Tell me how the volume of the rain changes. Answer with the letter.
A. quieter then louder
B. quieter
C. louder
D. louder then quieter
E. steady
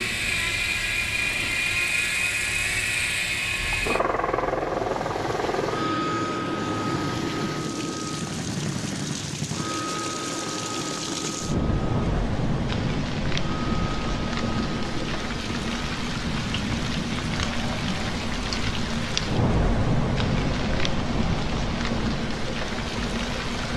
C.